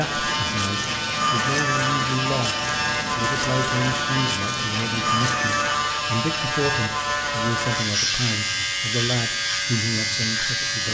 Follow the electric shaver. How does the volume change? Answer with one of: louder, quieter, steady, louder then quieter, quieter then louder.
steady.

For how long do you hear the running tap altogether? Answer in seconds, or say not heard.
11 s.